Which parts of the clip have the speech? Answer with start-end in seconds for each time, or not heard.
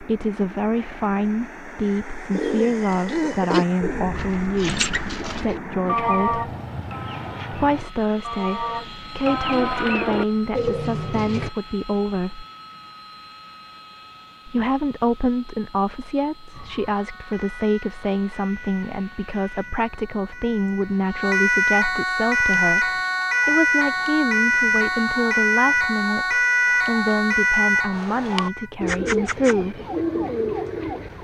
0.0-6.5, 7.5-12.4, 14.4-29.8.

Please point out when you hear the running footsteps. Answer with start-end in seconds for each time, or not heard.
not heard.